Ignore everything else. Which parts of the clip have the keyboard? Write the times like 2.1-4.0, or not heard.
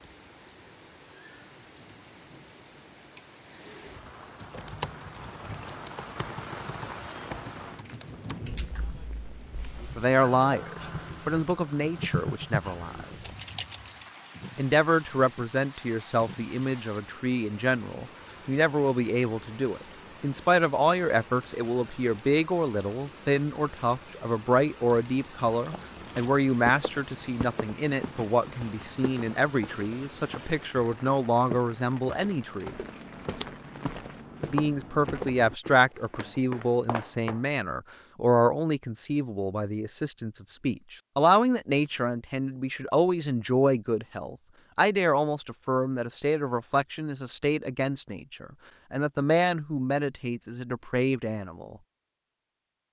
4.4-14.1.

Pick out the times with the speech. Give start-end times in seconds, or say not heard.
9.8-13.2, 14.6-32.8, 34.5-51.8.